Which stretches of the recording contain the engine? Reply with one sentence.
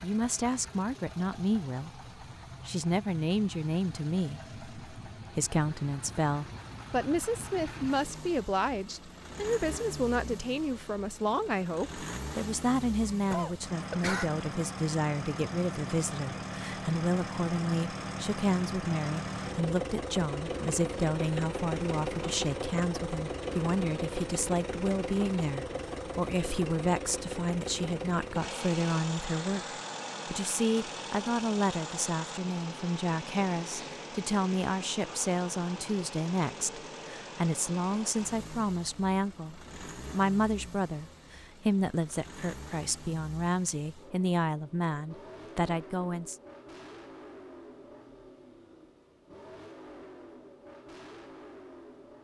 You can hear the engine from 0.0 to 52.2 s.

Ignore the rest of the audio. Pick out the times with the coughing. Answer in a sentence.
You can hear the coughing from 13.3 to 14.3 s.